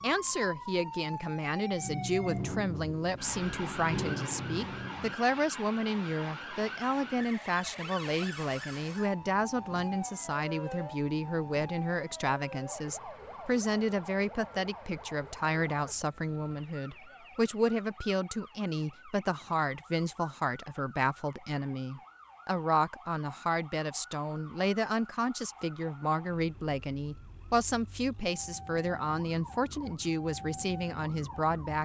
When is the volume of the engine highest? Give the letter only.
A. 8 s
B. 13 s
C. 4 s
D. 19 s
C.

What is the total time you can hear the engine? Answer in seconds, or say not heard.
5 s.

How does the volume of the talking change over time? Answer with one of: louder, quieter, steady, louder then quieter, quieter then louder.
steady.